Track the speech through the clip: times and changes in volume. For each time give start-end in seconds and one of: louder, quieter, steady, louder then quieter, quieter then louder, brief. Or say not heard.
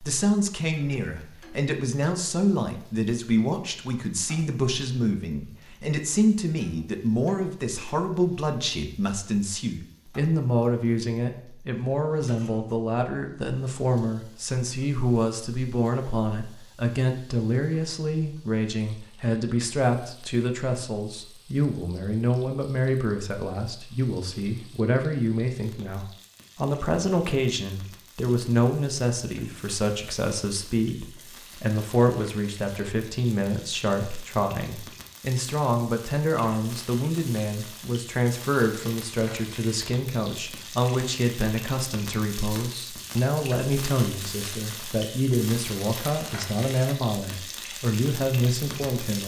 0.0-49.2 steady.